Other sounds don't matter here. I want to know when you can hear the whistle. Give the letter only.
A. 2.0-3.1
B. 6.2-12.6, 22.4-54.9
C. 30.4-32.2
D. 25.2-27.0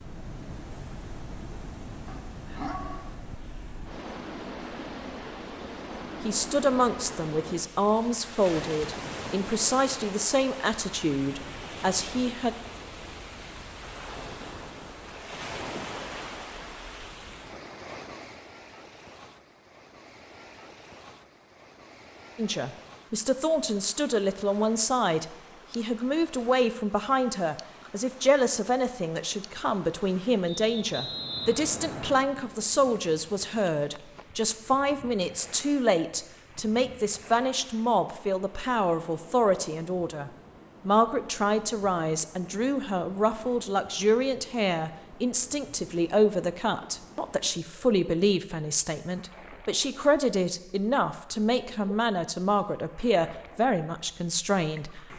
C.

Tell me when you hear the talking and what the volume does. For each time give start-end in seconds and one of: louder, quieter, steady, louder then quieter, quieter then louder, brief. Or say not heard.
6.2-12.6 steady
22.4-54.9 steady.